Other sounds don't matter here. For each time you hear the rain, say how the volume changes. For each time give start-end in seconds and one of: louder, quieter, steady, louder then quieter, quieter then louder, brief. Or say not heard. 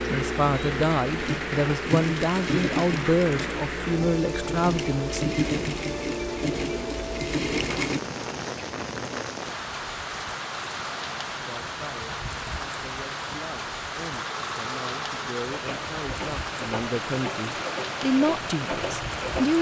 0.0-19.5 steady.